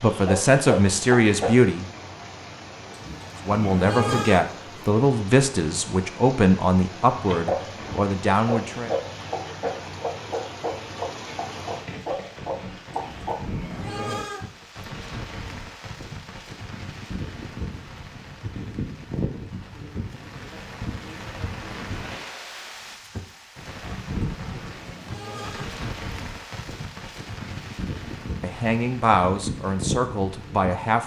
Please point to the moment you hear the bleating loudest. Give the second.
4 s.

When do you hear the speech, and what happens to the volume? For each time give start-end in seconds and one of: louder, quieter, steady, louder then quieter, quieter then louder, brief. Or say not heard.
0.0-1.9 brief
3.4-8.9 steady
28.4-31.0 brief.